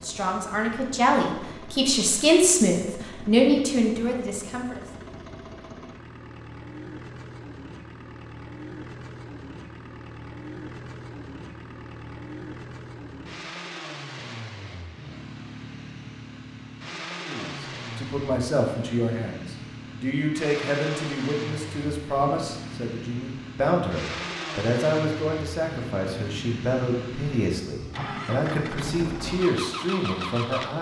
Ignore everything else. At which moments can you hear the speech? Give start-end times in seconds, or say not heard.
0.0-4.8, 17.2-30.7.